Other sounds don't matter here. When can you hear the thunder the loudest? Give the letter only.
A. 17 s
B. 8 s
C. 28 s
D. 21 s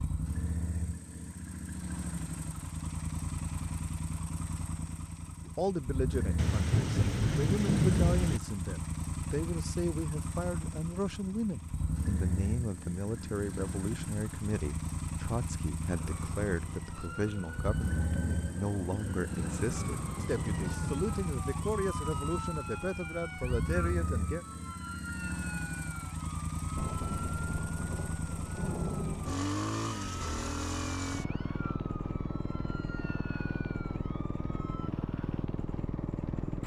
B.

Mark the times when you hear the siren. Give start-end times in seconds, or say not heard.
15.9-34.9.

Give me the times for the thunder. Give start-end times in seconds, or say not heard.
6.3-8.4, 18.1-21.9, 26.8-29.5.